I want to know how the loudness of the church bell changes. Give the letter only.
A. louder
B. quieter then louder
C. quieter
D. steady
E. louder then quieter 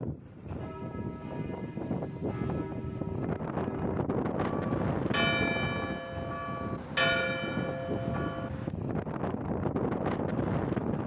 A.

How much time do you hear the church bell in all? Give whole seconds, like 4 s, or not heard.
8 s.